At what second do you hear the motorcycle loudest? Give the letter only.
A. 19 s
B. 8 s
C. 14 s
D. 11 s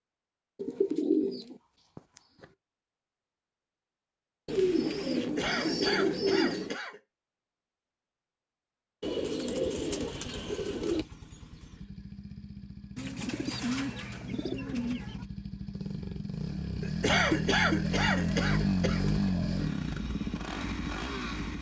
A.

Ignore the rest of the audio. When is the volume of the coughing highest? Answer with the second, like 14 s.
17 s.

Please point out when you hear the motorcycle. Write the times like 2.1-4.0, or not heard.
9.6-21.5.